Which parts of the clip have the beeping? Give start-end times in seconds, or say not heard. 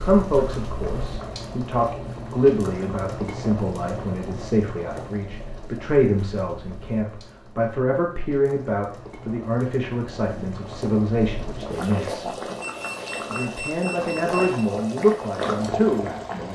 12.6-14.7.